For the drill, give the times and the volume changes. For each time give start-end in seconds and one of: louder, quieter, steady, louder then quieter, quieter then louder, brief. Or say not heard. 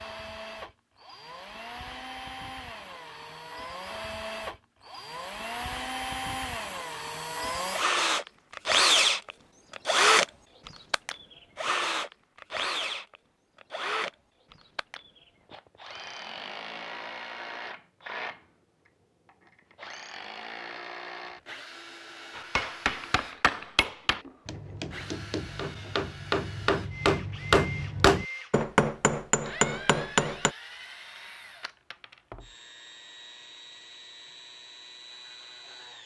0.0-36.0 louder then quieter.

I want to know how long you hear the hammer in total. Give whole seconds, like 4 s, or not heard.
8 s.